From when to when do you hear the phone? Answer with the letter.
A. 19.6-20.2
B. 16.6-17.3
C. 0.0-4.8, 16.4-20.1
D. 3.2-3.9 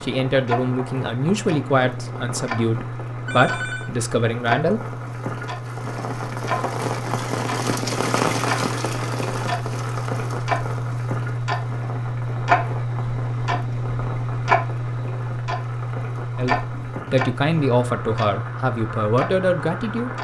D.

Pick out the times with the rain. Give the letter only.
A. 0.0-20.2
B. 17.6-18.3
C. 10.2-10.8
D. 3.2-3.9
A.